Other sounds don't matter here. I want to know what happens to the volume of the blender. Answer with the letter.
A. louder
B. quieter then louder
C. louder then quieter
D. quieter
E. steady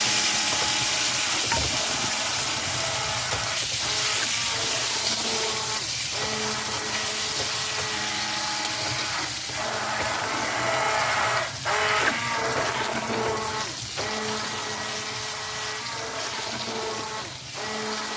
C.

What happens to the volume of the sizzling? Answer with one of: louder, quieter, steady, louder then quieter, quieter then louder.
quieter.